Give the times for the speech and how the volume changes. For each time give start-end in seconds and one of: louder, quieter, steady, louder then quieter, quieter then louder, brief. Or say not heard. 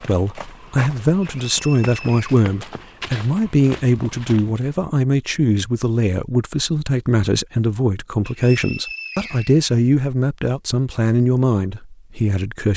0.1-12.7 steady.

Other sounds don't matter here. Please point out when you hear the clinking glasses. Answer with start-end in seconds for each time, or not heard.
not heard.